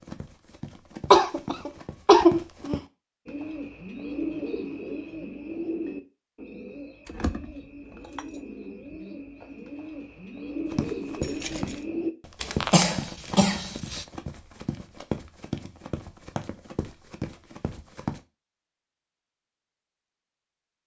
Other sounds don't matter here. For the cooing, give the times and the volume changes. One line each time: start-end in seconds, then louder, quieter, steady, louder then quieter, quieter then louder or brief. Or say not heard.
3.2-12.2 quieter then louder.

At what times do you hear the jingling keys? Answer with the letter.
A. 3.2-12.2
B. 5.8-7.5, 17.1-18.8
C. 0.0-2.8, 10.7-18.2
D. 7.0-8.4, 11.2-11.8
D.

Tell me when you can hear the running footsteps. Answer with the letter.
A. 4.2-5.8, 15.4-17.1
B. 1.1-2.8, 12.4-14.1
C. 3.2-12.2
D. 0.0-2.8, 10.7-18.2
D.